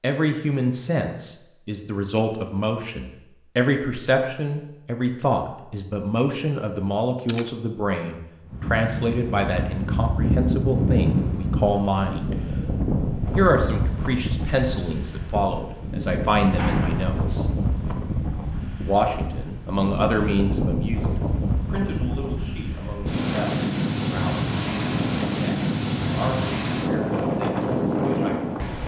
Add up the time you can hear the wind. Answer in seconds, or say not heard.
20 s.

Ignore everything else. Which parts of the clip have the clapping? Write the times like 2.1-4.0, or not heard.
16.6-17.1.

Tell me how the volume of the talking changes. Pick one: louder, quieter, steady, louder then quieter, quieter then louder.
quieter.